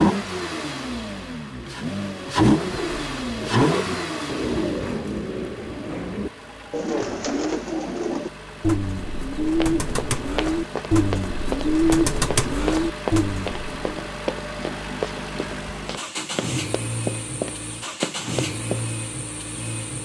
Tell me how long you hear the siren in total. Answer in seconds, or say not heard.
not heard.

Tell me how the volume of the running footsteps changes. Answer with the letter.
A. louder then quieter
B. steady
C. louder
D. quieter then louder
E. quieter
D.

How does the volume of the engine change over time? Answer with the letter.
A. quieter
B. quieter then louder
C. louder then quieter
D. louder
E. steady
B.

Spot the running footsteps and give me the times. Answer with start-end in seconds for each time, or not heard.
9.6-18.9.